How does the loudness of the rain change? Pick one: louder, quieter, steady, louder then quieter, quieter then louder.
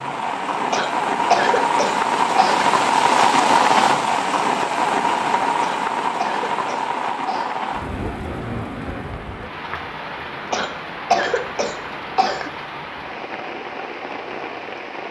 quieter.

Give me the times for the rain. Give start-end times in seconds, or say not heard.
0.0-15.0.